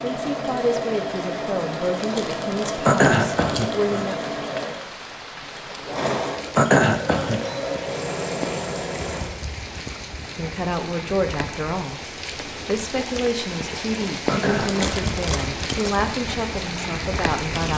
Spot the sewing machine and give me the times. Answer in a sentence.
You can hear the sewing machine from 0.0 to 9.3 s.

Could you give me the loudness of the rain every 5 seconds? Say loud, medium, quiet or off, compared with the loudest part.
medium, medium, loud, loud.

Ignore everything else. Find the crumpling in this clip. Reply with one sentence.
You can hear the crumpling from 1.9 to 3.8 s and from 14.6 to 16.1 s.